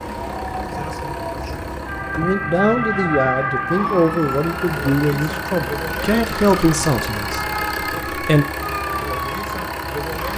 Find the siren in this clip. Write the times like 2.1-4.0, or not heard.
0.0-10.3.